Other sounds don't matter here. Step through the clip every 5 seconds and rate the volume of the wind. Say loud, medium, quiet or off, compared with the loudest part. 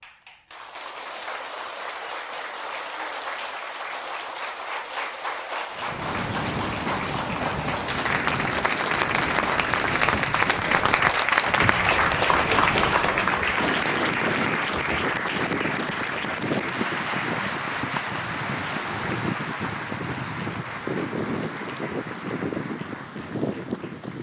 off, loud, loud, loud, loud.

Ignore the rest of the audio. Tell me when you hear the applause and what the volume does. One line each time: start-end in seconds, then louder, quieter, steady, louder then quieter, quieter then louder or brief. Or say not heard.
0.0-24.1 louder then quieter.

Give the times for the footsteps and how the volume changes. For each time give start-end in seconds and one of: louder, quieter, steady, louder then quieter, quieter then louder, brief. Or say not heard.
not heard.